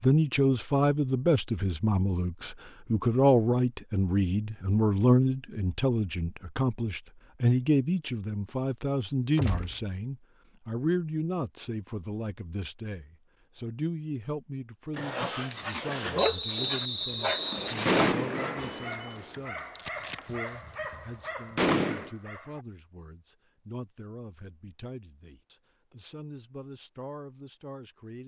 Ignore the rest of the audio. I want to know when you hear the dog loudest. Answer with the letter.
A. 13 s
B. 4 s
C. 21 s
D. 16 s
D.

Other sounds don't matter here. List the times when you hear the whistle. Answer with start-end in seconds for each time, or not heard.
16.1-18.1.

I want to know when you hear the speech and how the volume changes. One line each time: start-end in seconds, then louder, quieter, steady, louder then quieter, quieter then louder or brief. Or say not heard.
0.0-28.2 quieter.